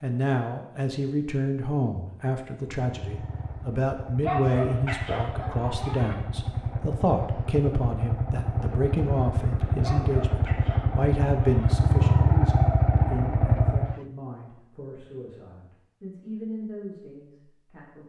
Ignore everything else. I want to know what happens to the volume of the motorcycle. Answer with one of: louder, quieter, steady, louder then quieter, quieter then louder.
louder.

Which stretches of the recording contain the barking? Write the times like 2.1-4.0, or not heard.
4.2-6.2, 9.8-11.8.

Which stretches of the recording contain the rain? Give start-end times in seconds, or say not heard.
not heard.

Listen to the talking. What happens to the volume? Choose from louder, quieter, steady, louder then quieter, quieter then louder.
quieter.